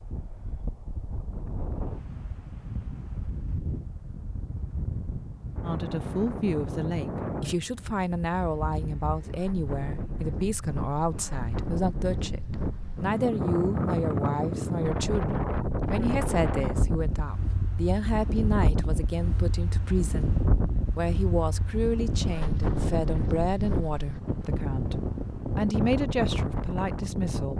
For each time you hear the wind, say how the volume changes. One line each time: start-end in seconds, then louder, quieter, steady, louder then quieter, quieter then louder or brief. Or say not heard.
0.0-27.5 louder.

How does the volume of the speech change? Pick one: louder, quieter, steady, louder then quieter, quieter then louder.
steady.